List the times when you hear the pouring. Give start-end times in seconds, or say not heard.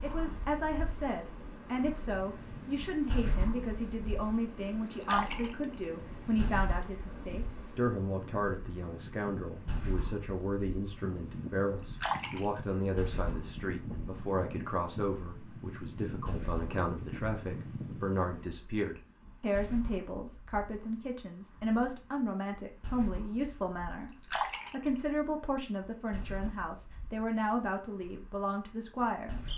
4.8-5.8, 11.8-12.4, 24.1-25.0.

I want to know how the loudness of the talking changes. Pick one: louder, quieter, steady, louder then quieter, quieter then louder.
steady.